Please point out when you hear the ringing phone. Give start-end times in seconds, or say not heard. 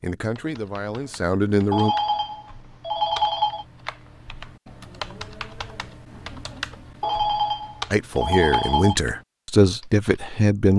1.7-3.6, 7.0-8.9.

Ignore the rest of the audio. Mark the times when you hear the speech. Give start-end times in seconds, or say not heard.
0.0-1.9, 7.9-10.7.